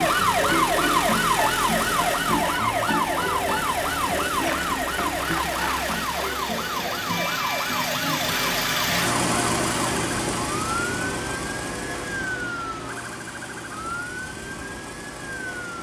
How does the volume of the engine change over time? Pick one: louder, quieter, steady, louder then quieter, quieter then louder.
louder then quieter.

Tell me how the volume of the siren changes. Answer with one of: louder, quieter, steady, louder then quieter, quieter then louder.
quieter.